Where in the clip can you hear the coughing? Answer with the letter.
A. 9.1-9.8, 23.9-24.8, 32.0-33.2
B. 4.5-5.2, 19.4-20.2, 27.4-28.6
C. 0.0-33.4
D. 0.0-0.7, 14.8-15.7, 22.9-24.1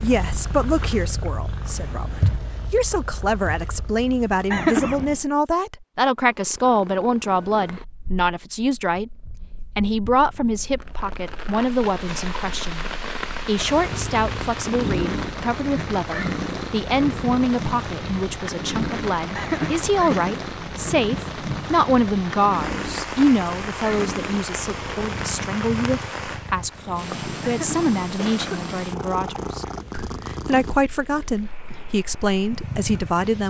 B.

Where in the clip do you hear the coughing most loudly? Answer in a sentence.
The loudest moment of the coughing is at 5 seconds.